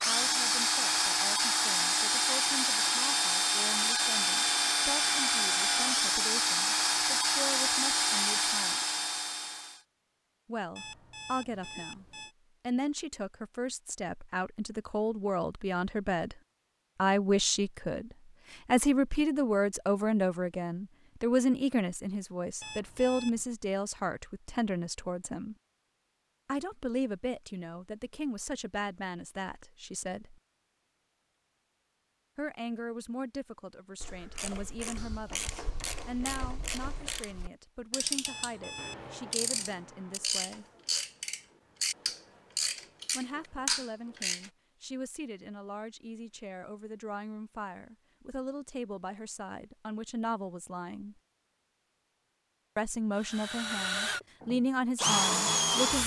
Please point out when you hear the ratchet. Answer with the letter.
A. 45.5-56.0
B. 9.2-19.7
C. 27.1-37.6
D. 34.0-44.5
D.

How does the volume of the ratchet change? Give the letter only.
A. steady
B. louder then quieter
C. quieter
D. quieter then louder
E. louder
E.